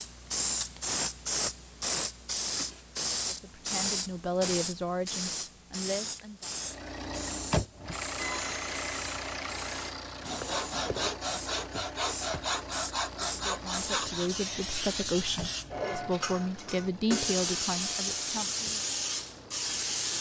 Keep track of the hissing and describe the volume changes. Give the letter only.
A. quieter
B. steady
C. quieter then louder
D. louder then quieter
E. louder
C.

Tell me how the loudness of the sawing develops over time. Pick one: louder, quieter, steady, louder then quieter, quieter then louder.
louder.